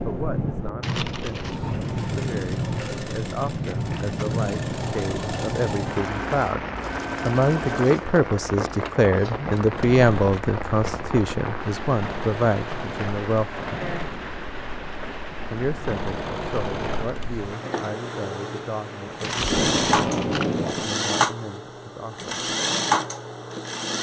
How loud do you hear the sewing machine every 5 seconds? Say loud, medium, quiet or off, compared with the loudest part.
medium, medium, medium, loud, loud.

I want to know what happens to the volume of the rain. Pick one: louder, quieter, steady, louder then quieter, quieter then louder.
quieter.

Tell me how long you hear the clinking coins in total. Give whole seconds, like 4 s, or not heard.
2 s.